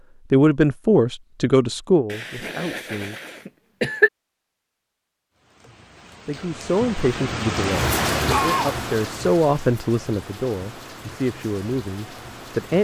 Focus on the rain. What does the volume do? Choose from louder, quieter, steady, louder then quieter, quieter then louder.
louder then quieter.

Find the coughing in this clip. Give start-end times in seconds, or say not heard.
2.1-4.1, 8.1-8.8.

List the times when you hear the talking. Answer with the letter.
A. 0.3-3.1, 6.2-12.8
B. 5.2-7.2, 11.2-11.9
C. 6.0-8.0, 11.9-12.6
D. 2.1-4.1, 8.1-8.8
A.